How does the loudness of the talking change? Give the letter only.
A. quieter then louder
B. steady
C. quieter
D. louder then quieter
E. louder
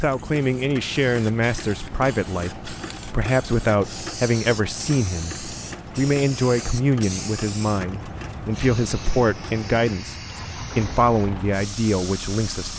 B.